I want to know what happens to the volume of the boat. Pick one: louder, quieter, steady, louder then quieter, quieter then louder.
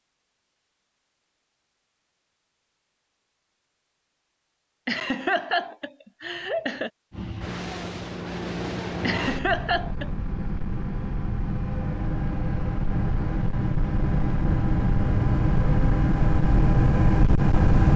louder.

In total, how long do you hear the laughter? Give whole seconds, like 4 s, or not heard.
3 s.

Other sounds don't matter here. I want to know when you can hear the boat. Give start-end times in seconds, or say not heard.
7.1-17.9.